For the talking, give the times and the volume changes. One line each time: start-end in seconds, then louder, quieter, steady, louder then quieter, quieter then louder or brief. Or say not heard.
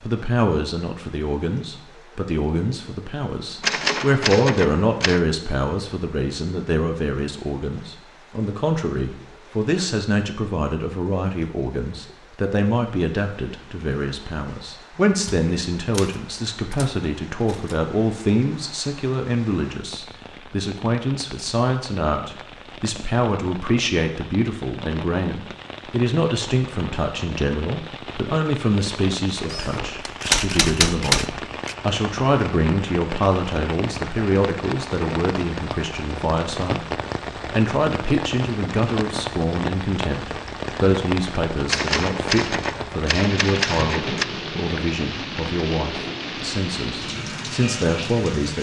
0.0-48.5 steady.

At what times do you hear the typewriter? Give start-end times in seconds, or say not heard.
3.6-5.2, 15.2-17.8, 29.4-31.8, 41.6-44.2.